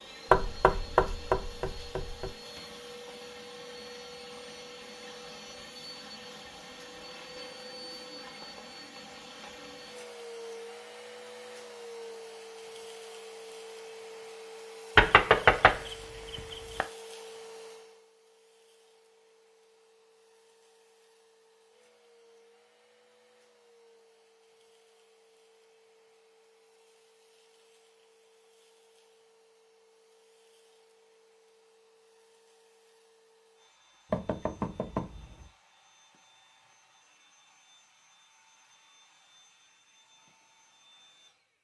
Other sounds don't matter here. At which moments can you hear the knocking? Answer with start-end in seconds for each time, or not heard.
0.3-2.3, 14.9-16.9, 34.1-35.5.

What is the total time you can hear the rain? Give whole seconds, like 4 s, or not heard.
not heard.